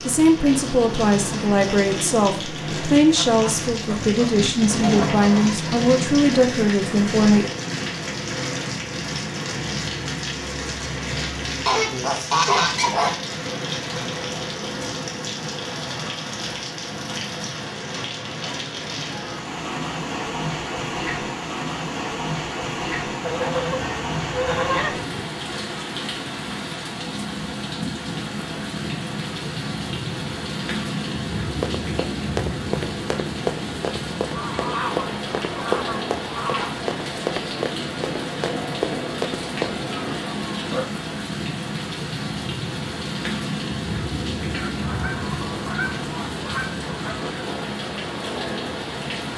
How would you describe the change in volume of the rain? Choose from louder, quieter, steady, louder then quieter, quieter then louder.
steady.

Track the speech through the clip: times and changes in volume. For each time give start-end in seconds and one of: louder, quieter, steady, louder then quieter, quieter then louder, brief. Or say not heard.
0.1-7.5 steady.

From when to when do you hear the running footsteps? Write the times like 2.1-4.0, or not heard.
31.4-39.8.